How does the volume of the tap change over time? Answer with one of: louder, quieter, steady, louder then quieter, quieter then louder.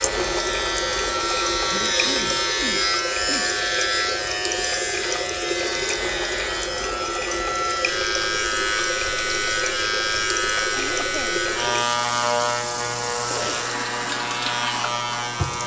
steady.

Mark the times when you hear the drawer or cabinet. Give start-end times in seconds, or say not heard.
not heard.